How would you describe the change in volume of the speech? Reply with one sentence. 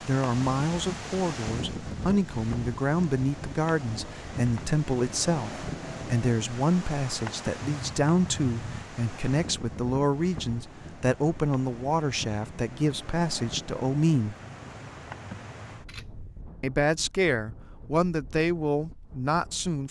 The volume of the speech stays about the same.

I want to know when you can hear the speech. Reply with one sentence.
You can hear the speech from 0.1 to 14.3 s and from 16.6 to 19.8 s.